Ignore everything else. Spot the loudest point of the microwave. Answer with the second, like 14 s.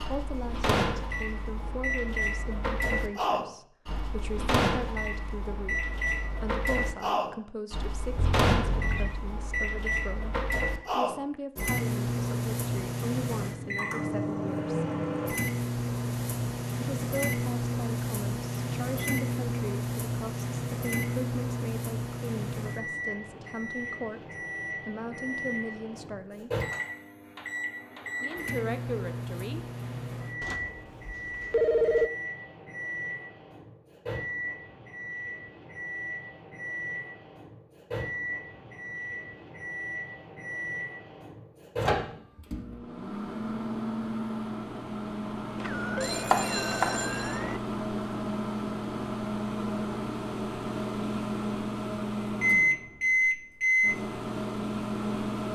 53 s.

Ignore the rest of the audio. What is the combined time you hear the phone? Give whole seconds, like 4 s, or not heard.
5 s.